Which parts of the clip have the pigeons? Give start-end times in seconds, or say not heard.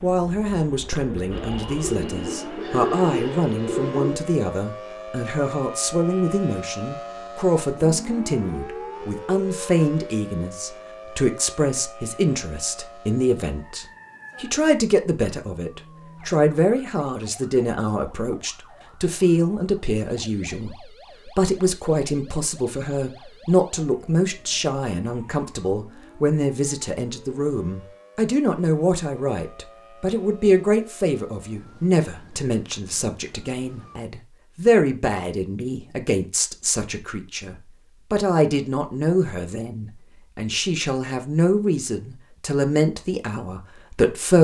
1.3-4.2.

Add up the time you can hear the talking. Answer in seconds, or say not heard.
44 s.